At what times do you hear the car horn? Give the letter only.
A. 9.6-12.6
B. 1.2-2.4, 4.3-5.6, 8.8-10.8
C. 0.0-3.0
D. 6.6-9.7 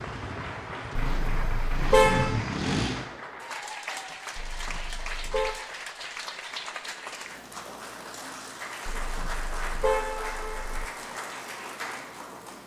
B.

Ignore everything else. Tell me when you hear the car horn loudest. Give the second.
2 s.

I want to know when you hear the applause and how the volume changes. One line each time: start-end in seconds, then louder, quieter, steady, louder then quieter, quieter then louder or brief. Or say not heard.
0.0-12.6 steady.